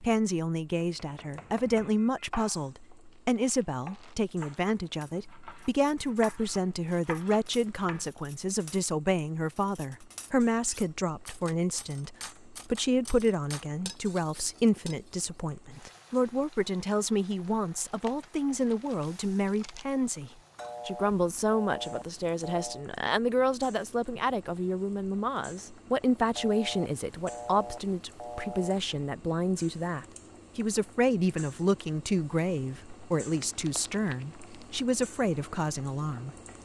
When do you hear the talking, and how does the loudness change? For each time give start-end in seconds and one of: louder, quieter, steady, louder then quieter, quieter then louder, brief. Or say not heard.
0.0-36.4 steady.